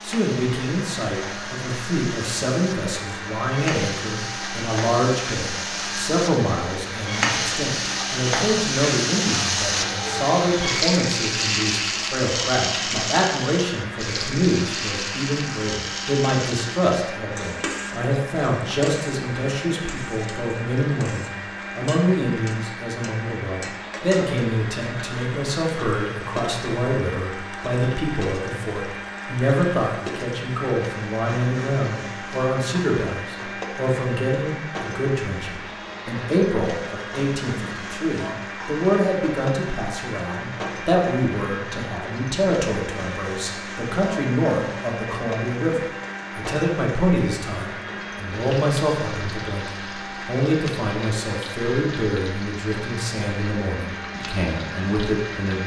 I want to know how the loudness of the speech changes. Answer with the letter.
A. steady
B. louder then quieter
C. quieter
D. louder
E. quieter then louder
A.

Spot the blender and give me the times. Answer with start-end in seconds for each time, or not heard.
0.0-55.6.